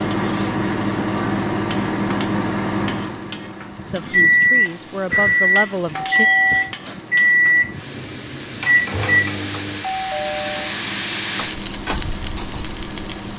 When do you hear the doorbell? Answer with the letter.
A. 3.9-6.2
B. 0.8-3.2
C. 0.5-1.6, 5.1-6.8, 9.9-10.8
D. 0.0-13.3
C.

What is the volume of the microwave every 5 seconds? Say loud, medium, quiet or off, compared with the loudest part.
loud, loud, quiet.